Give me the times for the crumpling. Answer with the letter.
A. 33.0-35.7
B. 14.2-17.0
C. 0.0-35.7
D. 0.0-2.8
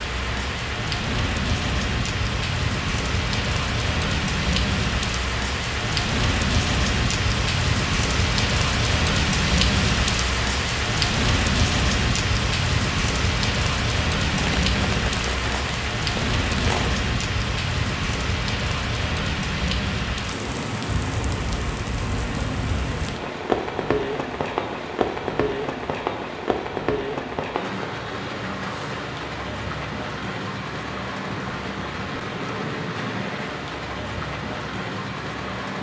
B.